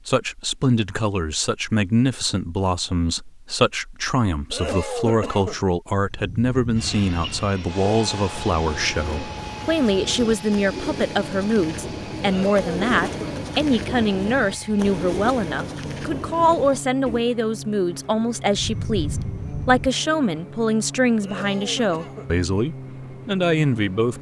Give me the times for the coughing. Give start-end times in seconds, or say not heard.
4.5-5.6, 12.2-13.3, 21.2-22.3.